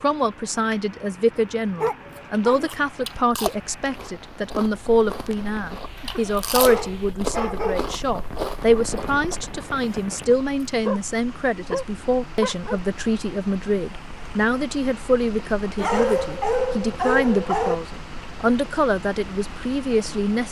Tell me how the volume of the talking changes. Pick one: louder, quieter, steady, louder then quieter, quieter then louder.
steady.